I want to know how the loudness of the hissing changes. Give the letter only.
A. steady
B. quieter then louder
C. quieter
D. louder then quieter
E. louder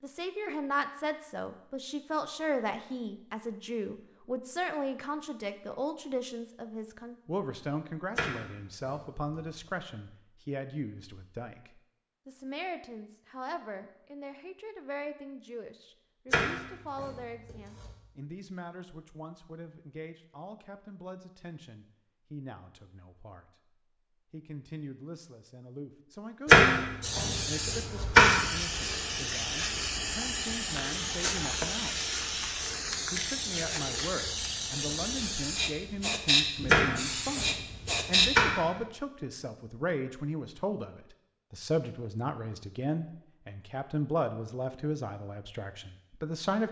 A.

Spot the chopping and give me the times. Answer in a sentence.
The chopping can be heard from 8.2 to 9.4 s, from 16.3 to 17.9 s, from 26.4 to 28.4 s and from 36.6 to 38.6 s.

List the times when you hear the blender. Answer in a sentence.
The blender can't be heard in this clip.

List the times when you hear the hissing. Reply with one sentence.
The hissing can be heard from 27.0 to 38.4 s.